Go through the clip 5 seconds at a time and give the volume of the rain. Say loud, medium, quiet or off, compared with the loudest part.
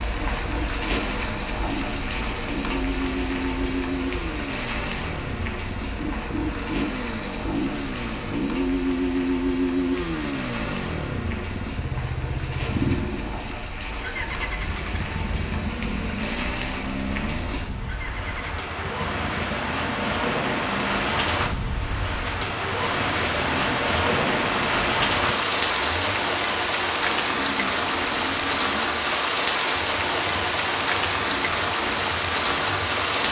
medium, quiet, quiet, medium, loud, loud, loud.